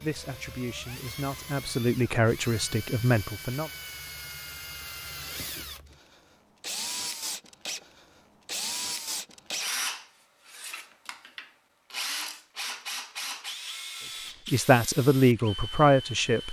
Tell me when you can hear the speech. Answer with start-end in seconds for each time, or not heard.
0.0-3.7, 14.5-16.4.